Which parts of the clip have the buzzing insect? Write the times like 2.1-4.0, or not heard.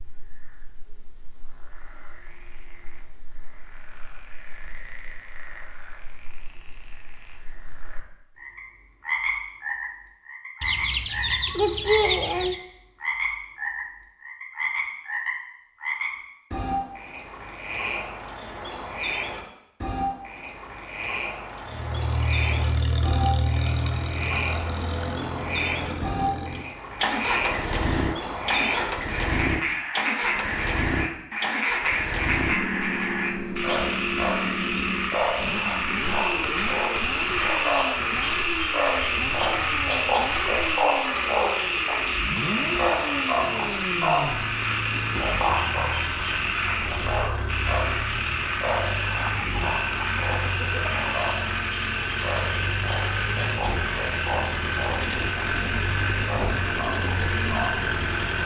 not heard.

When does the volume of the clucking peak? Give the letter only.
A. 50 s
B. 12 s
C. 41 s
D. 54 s
B.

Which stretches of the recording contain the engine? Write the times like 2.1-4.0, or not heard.
21.6-58.4.